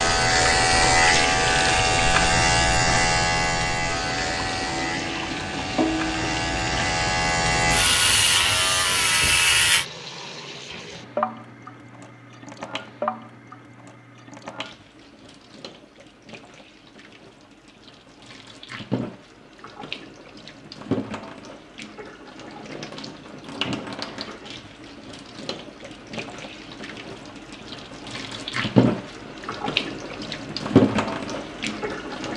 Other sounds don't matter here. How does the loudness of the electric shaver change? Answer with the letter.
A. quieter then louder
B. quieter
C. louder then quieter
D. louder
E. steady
A.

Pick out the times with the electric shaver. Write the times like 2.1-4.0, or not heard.
0.0-9.8.